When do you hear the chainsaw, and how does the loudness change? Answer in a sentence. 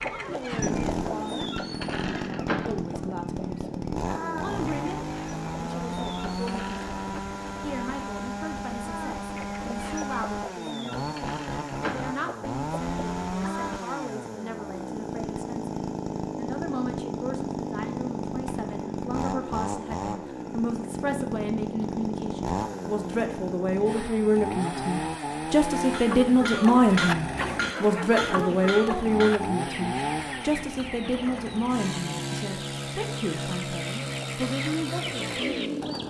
The chainsaw can be heard from 0.3 to 36.0 s, at a steady volume.